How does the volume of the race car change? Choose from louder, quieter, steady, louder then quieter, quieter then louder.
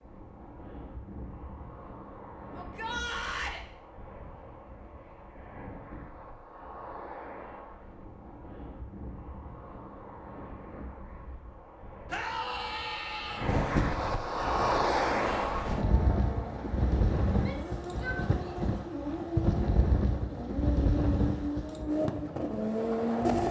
louder.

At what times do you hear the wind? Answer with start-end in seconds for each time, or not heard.
0.0-23.4.